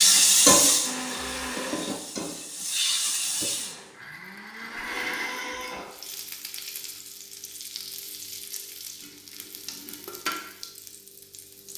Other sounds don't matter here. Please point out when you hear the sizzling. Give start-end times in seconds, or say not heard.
0.0-3.8, 5.8-11.7.